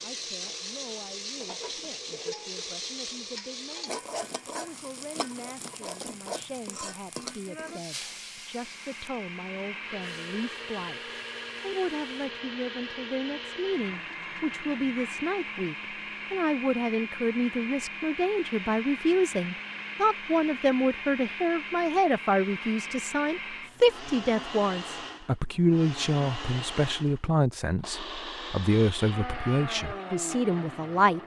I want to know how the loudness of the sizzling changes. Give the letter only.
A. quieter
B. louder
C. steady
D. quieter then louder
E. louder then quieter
A.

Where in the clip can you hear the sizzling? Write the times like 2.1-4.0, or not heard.
0.0-12.3.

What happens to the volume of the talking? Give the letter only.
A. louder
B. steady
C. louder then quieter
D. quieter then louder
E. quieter
A.